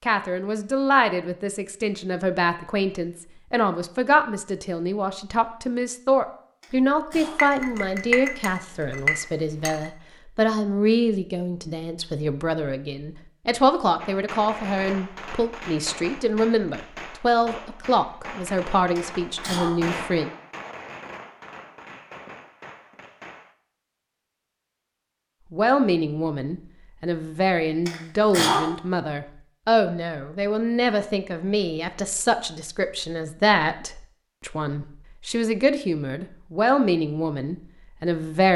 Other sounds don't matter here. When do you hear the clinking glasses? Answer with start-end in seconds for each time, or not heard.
7.3-9.9.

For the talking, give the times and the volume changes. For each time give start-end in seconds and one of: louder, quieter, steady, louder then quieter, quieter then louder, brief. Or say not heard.
0.0-20.3 steady
25.5-38.5 steady.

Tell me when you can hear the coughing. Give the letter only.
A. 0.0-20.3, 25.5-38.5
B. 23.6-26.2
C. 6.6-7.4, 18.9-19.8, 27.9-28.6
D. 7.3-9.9
C.